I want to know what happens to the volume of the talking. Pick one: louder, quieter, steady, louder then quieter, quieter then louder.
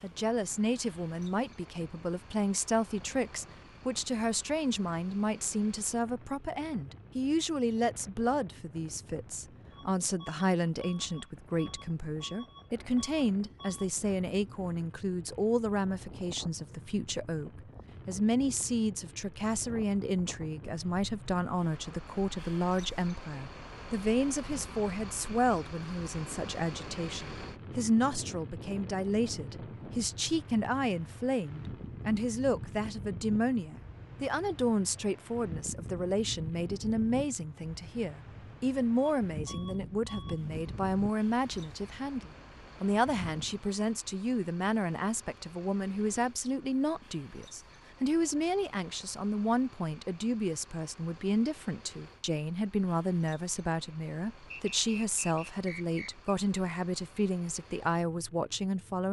steady.